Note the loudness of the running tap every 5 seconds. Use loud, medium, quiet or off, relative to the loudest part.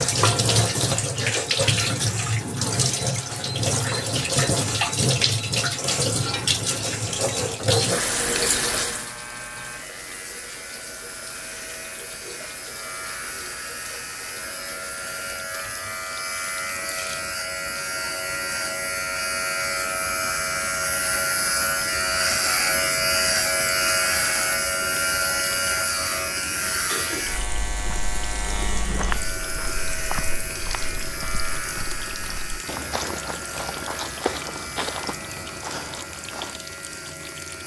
loud, loud, quiet, quiet, quiet, quiet, quiet, quiet.